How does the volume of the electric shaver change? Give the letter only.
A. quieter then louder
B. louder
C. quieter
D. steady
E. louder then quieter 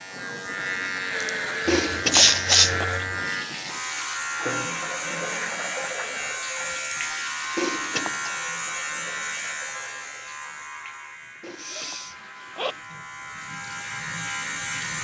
C.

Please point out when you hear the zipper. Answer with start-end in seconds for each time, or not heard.
1.6-2.9, 7.5-8.3, 11.4-12.8.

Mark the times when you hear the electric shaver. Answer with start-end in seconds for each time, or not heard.
0.0-14.9.